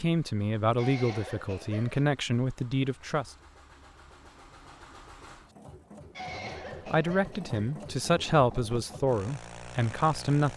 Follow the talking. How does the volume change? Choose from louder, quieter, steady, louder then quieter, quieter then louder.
steady.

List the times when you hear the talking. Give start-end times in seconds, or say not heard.
0.0-3.3, 6.3-10.5.